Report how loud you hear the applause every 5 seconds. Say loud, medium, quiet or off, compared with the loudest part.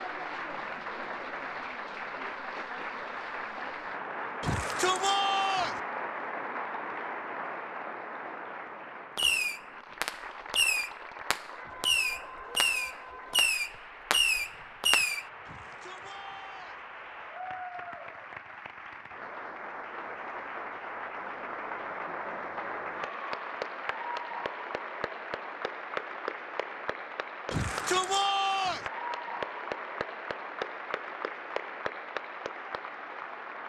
loud, loud, medium, medium, loud, loud, loud.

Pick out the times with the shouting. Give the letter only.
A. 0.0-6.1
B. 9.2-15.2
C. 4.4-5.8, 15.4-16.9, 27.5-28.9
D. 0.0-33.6
C.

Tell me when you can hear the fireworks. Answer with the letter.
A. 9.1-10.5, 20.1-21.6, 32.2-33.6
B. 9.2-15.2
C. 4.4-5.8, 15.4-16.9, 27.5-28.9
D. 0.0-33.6
B.